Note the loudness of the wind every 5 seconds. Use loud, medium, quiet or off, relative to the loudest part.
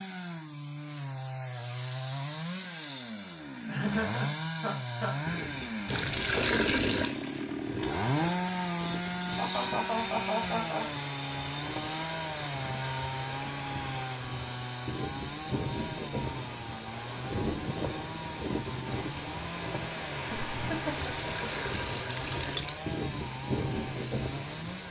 off, medium, medium, loud, loud.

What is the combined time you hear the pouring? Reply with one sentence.
You can hear the pouring for 3 seconds altogether.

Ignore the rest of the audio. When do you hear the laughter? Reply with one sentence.
The laughter can be heard from 3.6 to 5.2 s, from 9.3 to 10.8 s and from 20.3 to 21.3 s.